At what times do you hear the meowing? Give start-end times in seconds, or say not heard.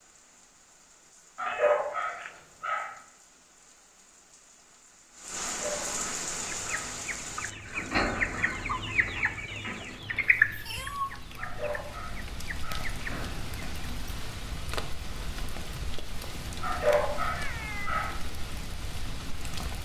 1.4-2.4, 10.2-11.2, 17.3-18.0.